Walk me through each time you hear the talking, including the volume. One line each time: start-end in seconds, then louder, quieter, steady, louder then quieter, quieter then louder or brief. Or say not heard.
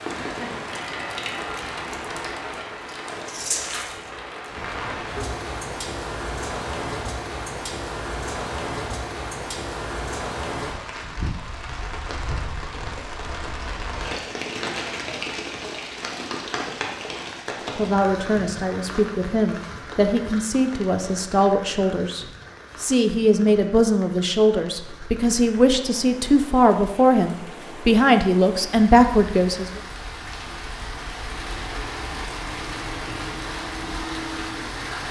17.8-29.7 louder.